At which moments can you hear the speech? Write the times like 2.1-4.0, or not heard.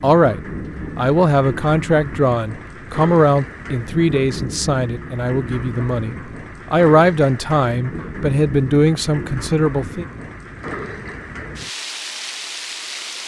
0.0-10.1.